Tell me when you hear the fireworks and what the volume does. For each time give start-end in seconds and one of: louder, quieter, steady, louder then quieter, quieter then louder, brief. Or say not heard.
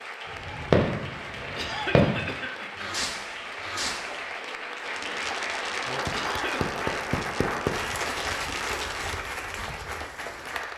0.3-9.2 quieter.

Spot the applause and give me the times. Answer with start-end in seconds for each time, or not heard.
0.0-10.7.